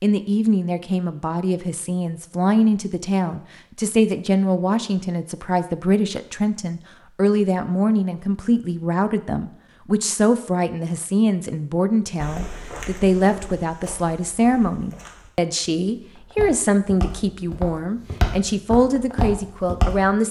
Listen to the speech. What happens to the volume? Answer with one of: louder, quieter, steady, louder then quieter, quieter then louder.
steady.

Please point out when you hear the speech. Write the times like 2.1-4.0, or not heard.
0.0-20.2.